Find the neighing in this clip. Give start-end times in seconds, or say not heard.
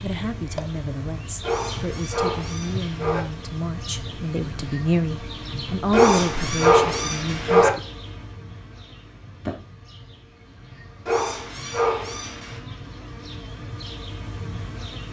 not heard.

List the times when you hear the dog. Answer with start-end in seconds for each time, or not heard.
1.4-3.2, 5.9-7.7, 11.1-12.6.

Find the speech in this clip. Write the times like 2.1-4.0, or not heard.
0.0-7.8.